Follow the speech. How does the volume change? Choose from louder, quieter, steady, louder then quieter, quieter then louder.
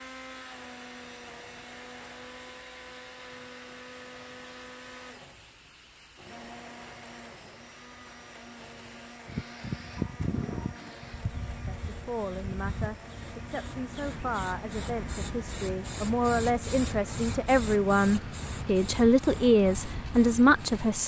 louder.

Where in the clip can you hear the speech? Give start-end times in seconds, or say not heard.
11.7-21.0.